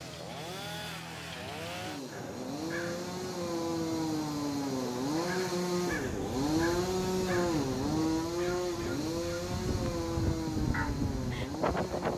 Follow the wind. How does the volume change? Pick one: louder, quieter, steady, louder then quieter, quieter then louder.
louder.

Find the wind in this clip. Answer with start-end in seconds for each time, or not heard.
5.8-12.1.